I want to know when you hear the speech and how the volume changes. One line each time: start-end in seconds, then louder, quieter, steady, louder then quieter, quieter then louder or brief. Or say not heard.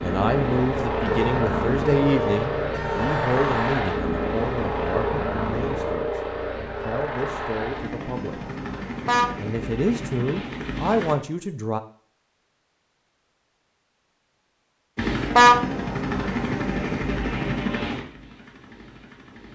0.0-8.5 quieter
9.3-11.8 brief.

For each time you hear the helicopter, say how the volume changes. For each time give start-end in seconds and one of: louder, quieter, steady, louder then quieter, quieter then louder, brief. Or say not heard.
0.0-11.2 quieter
14.9-19.5 quieter.